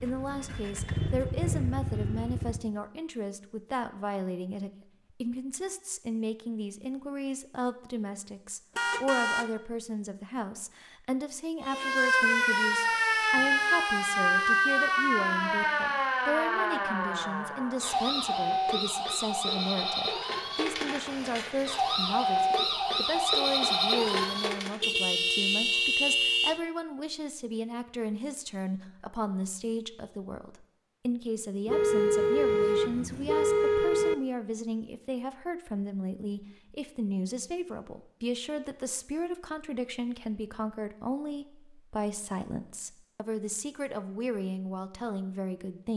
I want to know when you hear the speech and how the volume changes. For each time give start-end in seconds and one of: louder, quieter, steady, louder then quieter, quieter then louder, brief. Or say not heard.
0.0-45.9 steady.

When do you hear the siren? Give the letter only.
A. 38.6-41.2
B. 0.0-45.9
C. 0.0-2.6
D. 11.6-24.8
D.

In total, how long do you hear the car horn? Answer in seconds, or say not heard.
5 s.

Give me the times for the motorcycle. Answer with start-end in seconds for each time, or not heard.
0.0-2.6.